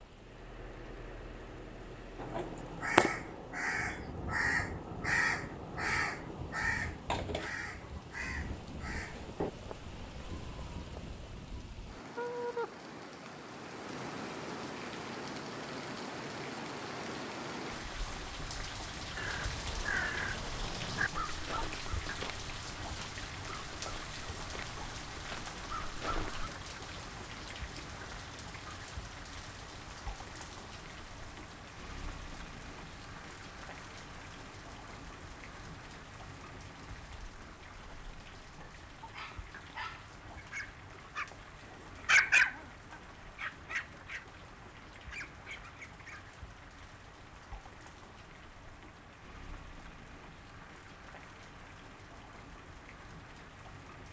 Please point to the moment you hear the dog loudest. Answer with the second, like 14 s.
42 s.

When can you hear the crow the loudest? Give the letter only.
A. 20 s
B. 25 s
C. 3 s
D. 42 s
C.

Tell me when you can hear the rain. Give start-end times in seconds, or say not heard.
0.0-54.0.